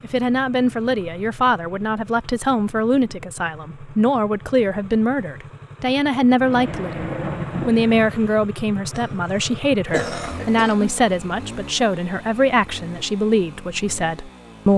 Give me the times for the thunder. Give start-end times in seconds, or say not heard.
6.4-8.1.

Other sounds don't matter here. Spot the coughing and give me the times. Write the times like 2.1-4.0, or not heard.
8.9-10.9.